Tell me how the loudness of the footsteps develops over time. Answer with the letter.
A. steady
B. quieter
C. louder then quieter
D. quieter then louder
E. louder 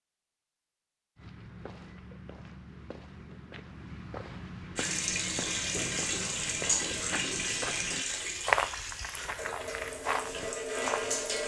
C.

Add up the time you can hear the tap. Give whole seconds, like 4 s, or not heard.
7 s.